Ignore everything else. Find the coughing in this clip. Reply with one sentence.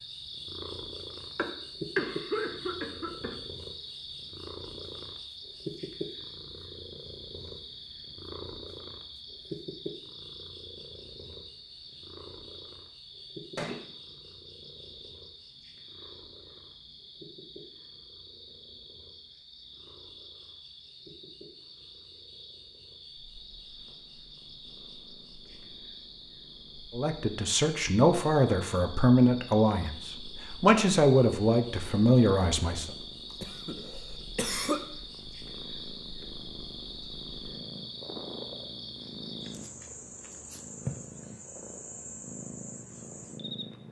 You can hear the coughing from 1.4 to 3.4 s and from 33.4 to 34.8 s.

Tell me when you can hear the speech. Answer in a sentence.
You can hear the speech from 26.9 to 32.9 s.